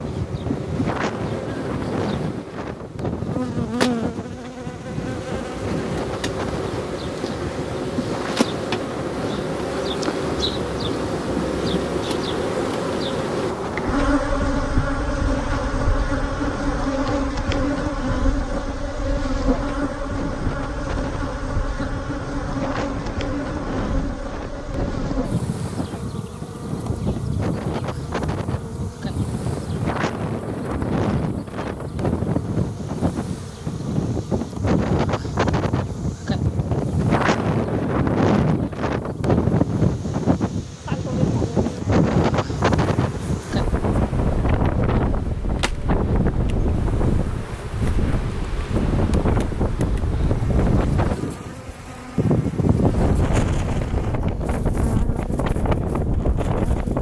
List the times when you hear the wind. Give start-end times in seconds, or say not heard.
0.0-56.9.